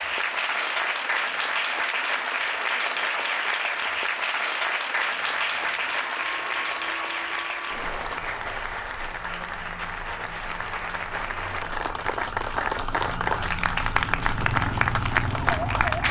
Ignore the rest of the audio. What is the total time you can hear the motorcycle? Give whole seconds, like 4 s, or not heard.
4 s.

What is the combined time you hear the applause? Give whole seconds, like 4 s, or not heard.
16 s.